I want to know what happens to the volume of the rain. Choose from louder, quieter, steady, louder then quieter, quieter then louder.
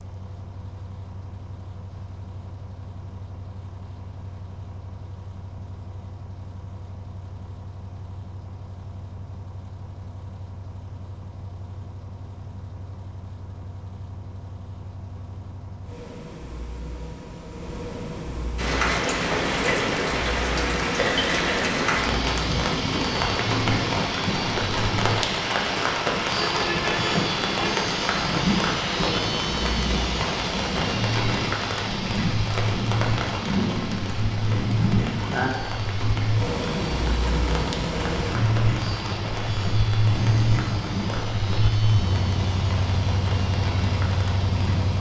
quieter.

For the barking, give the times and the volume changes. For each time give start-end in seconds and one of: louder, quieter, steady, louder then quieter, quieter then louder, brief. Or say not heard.
not heard.